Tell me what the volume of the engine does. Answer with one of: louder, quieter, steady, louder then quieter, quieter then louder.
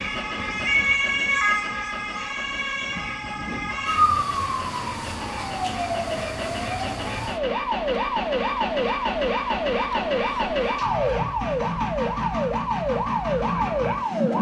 louder.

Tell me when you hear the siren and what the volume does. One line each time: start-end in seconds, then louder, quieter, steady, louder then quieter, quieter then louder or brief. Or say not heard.
0.0-14.3 steady.